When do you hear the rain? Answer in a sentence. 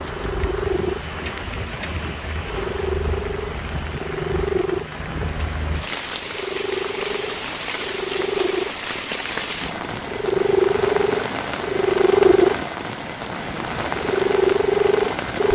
You can hear the rain from 0.0 to 15.5 s.